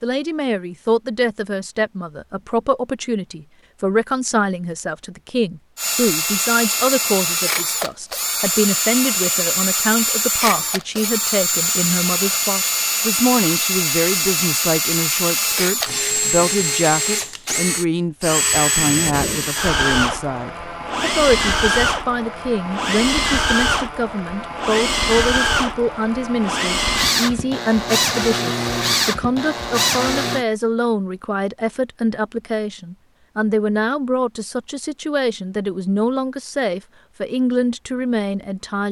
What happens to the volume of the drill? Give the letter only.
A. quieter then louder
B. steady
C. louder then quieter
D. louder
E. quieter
B.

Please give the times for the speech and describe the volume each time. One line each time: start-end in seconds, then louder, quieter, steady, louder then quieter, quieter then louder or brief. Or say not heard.
0.0-38.8 steady.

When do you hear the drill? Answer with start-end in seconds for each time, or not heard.
5.8-30.4.